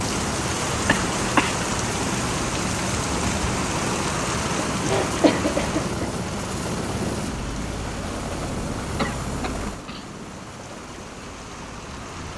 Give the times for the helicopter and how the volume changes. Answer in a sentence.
You can hear the helicopter from 0.0 to 12.3 s, getting quieter.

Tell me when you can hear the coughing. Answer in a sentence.
The coughing can be heard from 0.8 to 1.6 s, from 4.8 to 6.0 s and from 8.9 to 10.1 s.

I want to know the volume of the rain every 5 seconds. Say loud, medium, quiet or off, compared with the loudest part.
loud, medium, quiet.